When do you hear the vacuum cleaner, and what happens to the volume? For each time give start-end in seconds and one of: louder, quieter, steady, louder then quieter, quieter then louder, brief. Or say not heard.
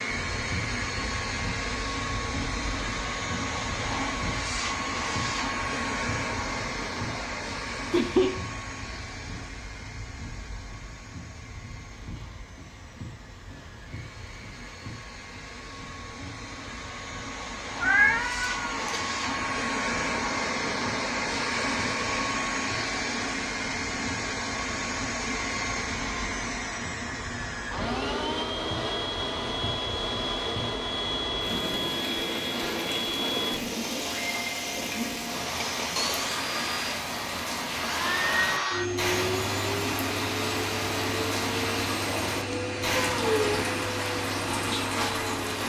0.0-45.6 quieter then louder.